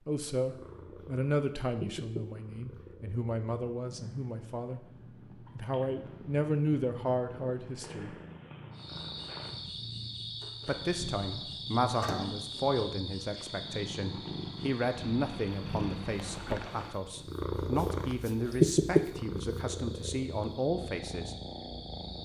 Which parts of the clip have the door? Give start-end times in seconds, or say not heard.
10.4-12.7.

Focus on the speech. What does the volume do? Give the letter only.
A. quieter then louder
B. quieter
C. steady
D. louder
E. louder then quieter
C.